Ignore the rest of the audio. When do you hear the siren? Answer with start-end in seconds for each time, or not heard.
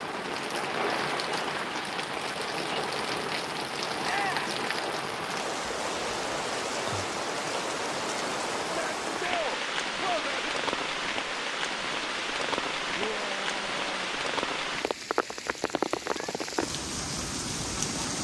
not heard.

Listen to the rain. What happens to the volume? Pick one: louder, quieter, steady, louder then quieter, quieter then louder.
steady.